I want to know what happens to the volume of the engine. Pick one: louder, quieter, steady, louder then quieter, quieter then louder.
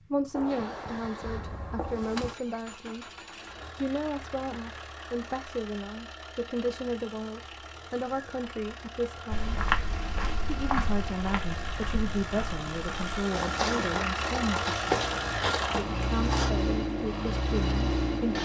louder.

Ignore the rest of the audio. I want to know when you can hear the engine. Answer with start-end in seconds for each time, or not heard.
0.0-18.4.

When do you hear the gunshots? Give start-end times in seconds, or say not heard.
0.3-2.4.